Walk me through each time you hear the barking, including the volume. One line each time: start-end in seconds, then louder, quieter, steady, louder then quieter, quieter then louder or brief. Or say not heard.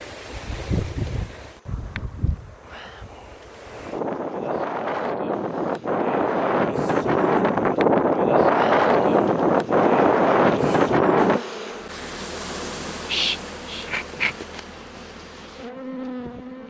not heard.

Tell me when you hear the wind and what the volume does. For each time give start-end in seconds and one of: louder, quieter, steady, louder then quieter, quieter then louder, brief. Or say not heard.
0.0-11.4 louder.